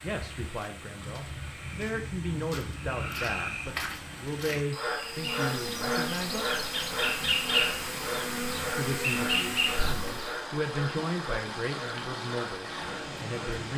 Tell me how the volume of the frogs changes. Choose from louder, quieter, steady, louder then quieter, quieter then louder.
louder then quieter.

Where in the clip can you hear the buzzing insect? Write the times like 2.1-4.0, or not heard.
5.0-10.4.